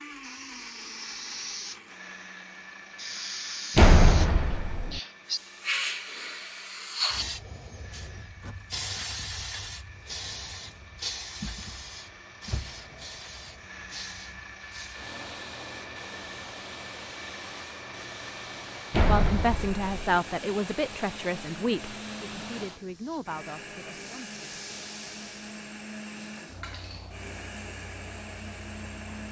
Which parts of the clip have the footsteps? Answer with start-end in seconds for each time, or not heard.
not heard.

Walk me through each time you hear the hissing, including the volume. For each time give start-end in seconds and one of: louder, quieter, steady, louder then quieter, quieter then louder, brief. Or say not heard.
0.0-29.2 quieter.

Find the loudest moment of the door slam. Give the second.
4 s.